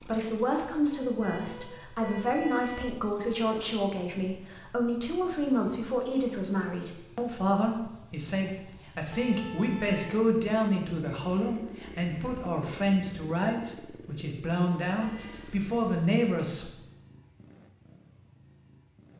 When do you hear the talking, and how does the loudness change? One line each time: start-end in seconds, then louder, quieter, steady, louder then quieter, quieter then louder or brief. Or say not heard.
0.0-16.7 steady.